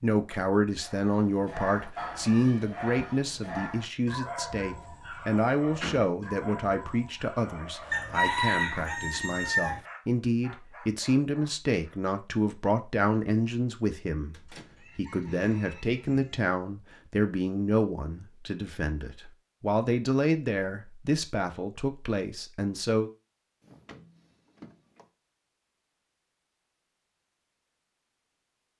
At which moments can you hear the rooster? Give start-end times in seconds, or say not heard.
7.9-9.8, 14.4-16.4.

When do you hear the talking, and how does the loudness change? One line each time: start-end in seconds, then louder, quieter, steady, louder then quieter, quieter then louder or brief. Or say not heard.
0.0-23.1 steady.